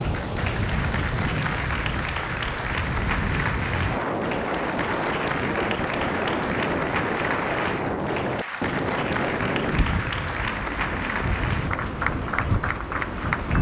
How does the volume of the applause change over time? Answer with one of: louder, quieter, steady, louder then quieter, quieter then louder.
steady.